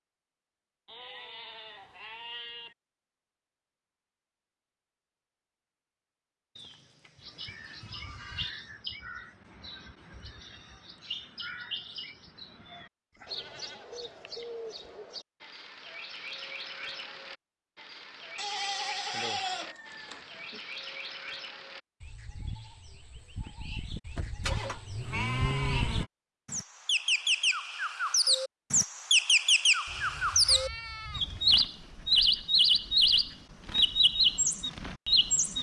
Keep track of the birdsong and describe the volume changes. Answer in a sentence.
The volume of the birdsong goes up.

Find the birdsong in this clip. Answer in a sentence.
You can hear the birdsong from 7.2 to 35.5 s.